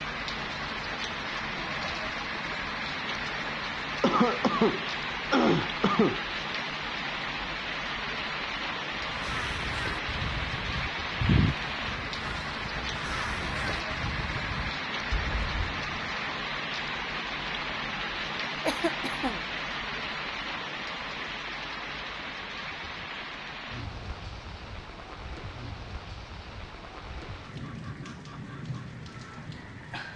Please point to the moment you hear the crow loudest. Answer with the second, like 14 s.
11 s.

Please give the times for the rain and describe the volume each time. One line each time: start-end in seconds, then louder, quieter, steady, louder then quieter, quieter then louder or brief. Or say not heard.
0.0-30.1 quieter.